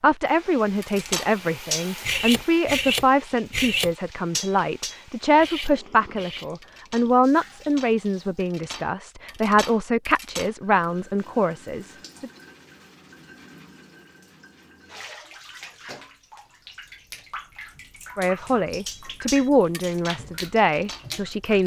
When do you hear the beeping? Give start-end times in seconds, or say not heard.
not heard.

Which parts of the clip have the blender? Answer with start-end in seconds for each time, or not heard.
not heard.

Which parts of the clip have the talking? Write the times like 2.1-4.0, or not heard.
0.0-12.3, 18.1-21.6.